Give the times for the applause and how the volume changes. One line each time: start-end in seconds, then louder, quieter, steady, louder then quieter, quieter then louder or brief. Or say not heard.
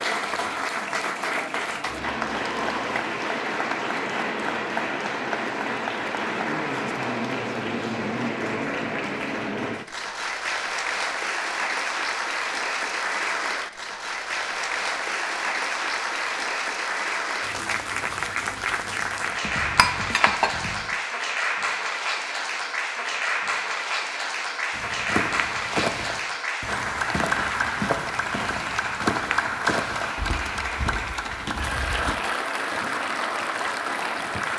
0.0-34.5 steady.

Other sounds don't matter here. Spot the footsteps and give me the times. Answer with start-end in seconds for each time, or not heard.
24.7-32.1.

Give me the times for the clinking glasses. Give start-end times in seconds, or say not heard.
19.4-20.9.